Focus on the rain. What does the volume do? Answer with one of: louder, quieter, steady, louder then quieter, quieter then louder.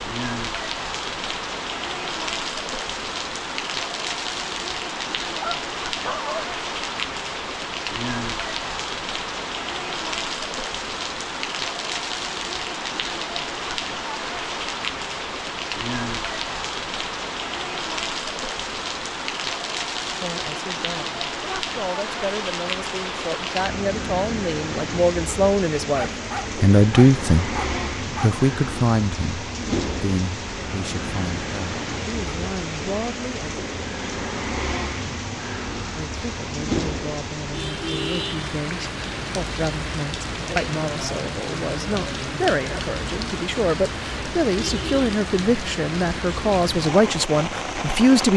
steady.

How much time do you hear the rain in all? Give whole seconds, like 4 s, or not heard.
48 s.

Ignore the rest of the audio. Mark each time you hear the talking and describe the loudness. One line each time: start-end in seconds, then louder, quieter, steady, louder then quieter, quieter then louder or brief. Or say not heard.
20.0-33.5 louder then quieter
36.0-48.3 louder.